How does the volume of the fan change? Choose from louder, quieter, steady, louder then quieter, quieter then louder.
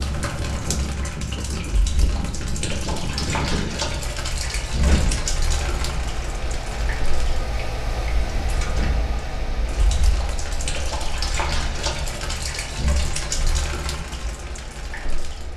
quieter.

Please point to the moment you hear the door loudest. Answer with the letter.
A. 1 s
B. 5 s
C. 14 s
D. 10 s
B.